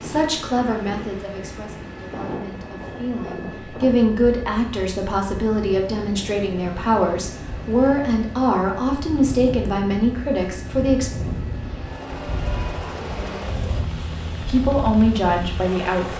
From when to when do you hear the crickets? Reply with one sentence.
You can't hear the crickets here.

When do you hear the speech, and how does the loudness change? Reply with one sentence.
The speech can be heard from 0.0 to 11.1 s, getting louder; and briefly from 14.3 to 16.1 s.